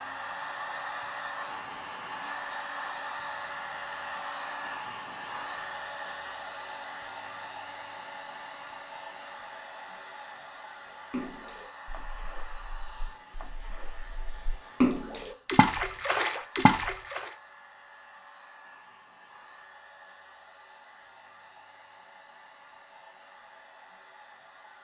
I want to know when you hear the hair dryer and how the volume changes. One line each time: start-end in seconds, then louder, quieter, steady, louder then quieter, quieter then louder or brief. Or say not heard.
0.0-24.7 quieter.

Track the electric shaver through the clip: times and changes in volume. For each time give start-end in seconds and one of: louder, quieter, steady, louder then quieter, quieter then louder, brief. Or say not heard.
not heard.